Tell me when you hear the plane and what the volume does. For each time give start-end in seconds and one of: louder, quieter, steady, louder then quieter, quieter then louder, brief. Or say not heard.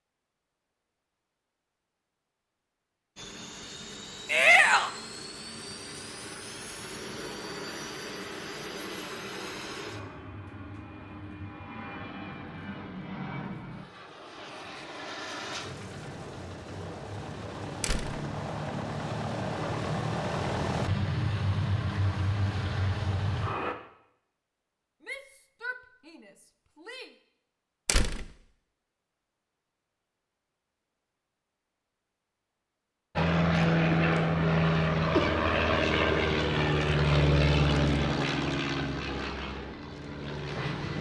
3.1-23.8 louder
33.1-40.9 quieter.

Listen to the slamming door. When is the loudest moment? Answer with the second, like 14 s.
28 s.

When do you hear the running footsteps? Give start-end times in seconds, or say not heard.
not heard.